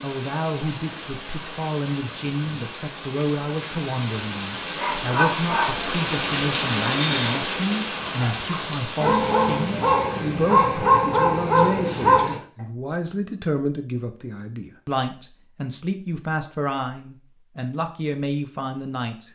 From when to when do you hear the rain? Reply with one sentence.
The rain can be heard from 0.0 to 10.4 s.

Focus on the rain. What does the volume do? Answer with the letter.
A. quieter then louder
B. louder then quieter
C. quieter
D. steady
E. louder
B.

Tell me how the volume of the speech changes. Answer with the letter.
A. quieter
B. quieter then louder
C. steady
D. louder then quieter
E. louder
C.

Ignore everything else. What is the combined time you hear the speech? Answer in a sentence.
You can hear the speech for 19 seconds altogether.